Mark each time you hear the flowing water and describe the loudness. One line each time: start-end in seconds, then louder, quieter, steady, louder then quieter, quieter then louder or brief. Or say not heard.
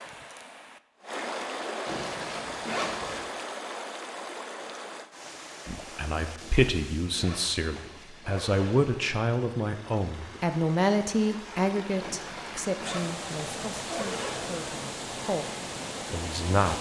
0.0-16.7 quieter then louder.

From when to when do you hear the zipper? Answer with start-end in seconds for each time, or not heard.
1.9-3.3, 6.3-9.0, 12.0-14.6.